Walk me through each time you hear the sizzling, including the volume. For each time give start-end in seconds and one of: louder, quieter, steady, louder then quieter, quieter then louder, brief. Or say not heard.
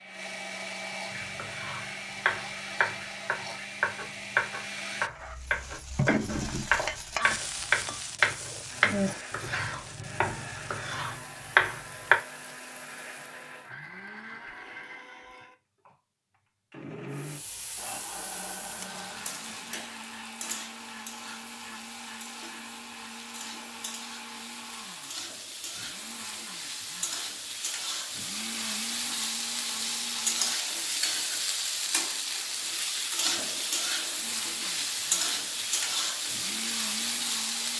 5.0-13.7 quieter
17.1-37.7 louder.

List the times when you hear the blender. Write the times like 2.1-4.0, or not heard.
0.0-5.1, 8.7-30.6, 34.1-37.7.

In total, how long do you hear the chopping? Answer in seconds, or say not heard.
11 s.